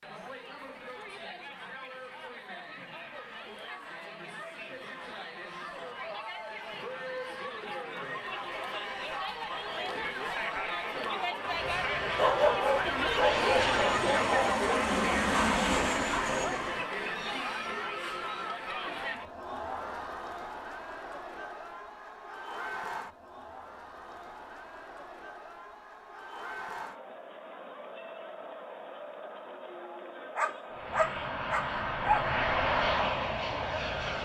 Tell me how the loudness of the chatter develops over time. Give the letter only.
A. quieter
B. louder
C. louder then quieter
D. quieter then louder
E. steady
C.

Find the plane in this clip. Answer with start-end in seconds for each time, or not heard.
11.4-16.9, 30.7-34.2.